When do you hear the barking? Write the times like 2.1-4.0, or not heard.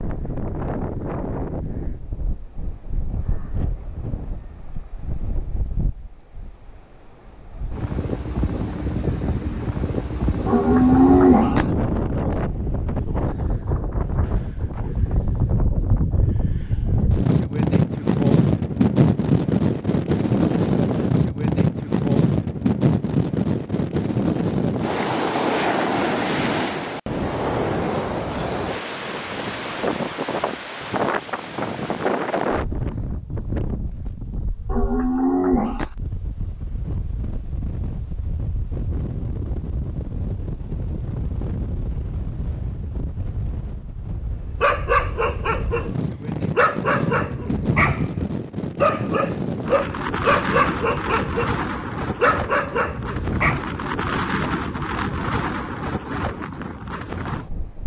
44.6-53.6.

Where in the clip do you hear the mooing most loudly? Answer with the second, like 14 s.
11 s.